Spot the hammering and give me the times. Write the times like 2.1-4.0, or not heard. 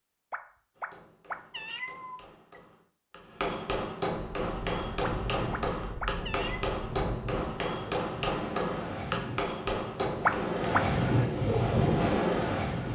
0.8-10.8.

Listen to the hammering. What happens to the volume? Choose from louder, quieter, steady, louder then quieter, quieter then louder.
louder.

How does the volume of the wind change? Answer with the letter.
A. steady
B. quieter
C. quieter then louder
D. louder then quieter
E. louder
E.